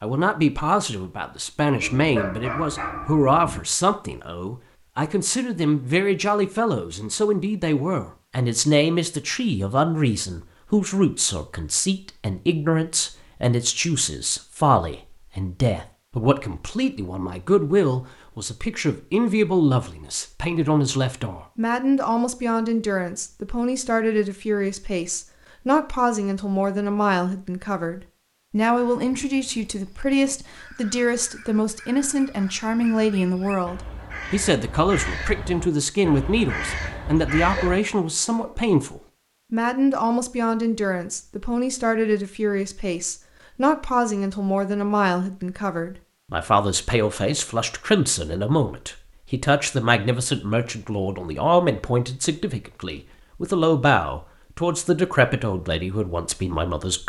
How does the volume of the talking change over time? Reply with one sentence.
The loudness of the talking stays about the same.